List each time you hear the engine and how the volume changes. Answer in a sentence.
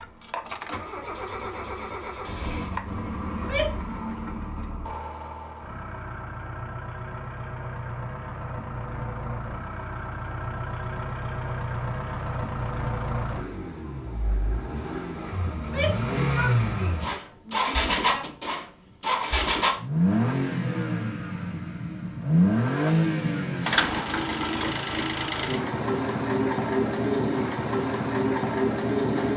You can hear the engine from 0.0 to 29.3 s, getting louder.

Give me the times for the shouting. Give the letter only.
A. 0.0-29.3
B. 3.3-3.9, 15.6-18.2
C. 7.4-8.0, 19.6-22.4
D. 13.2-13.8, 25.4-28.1
B.